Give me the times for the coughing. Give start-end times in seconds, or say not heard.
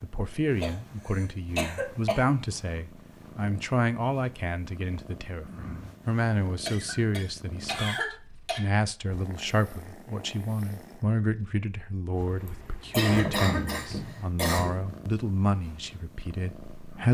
0.6-2.2, 6.7-8.6, 12.4-14.7.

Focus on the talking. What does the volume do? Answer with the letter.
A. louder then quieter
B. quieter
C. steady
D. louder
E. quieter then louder
C.